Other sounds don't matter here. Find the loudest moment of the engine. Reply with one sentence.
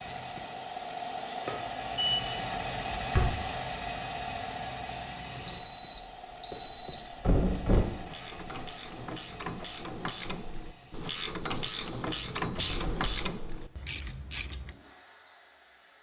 The loudest moment of the engine is at 3 seconds.